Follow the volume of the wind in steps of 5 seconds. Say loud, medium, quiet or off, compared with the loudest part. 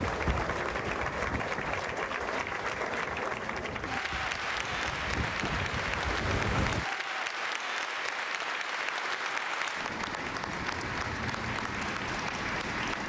medium, loud, off.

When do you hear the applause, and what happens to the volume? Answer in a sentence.
The applause can be heard from 0.0 to 13.0 s, at a steady volume.